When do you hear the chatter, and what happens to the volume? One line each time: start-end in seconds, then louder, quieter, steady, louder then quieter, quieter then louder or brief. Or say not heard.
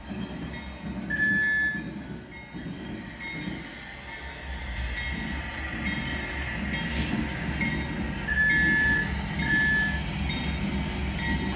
not heard.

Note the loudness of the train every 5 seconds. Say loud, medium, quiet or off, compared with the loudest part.
medium, loud, loud.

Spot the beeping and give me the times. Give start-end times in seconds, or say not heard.
1.1-1.8, 8.2-9.9.